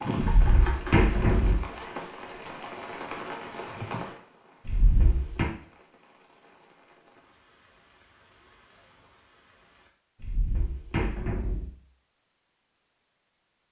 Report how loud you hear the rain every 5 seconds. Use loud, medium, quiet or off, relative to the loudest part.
loud, quiet, off.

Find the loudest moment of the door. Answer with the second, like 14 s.
1 s.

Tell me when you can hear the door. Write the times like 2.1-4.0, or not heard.
0.2-1.6, 4.7-5.5, 10.2-11.8.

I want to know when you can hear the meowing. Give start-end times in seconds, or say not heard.
not heard.